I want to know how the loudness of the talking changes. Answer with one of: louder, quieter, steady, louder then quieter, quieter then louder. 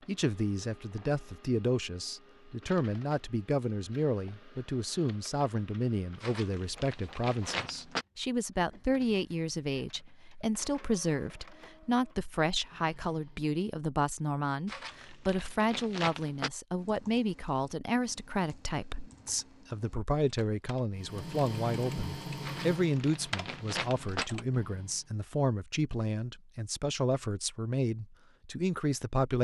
steady.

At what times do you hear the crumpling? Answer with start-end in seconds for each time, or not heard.
6.2-8.1, 14.7-16.5, 22.4-24.2.